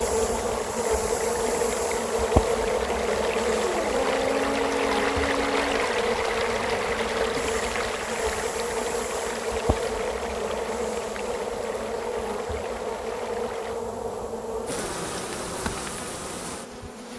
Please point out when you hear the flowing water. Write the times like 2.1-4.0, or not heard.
0.0-13.8.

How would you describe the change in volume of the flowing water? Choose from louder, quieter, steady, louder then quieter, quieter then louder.
louder then quieter.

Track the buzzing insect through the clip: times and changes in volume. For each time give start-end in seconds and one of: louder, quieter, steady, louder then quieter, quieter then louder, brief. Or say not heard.
0.0-17.1 quieter.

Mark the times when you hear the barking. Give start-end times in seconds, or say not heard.
3.6-5.9.